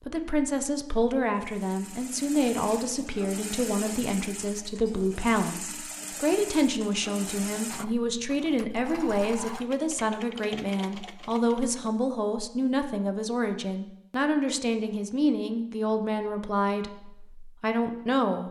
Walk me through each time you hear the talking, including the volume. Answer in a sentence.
You can hear the talking from 0.0 to 18.4 s, at a steady volume.